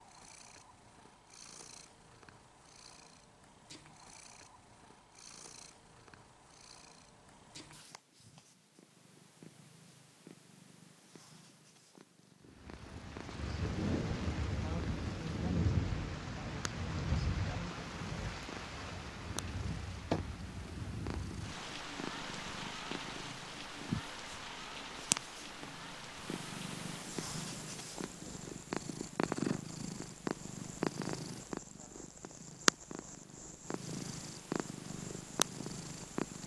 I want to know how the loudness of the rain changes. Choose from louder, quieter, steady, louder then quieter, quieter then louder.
quieter.